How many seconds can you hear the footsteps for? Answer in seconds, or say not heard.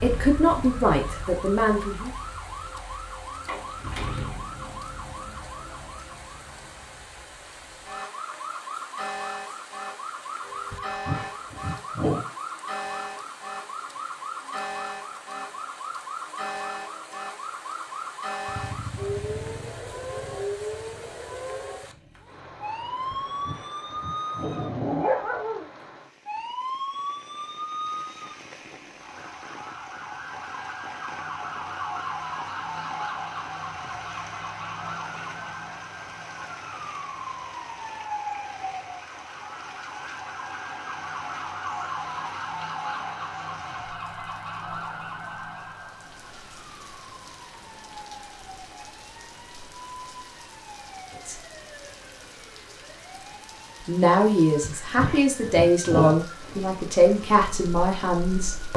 not heard.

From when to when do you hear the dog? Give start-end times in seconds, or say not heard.
10.7-12.2, 23.1-25.6, 54.6-56.1.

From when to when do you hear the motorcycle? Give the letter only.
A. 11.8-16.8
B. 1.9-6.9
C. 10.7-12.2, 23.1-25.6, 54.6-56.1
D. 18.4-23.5
D.